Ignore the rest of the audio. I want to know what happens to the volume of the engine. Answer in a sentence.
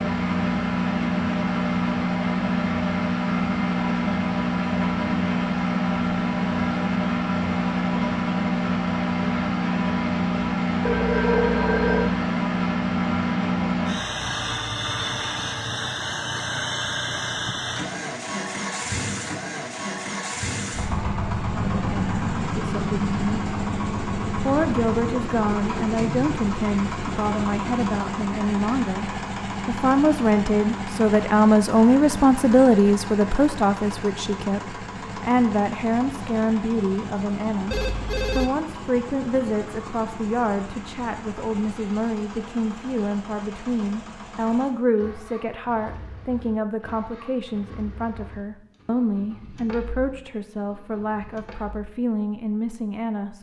The volume of the engine goes down.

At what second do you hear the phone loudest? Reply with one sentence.
The loudest moment of the phone is at 11 seconds.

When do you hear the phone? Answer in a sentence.
The phone can be heard from 10.8 to 12.2 s and from 37.7 to 38.5 s.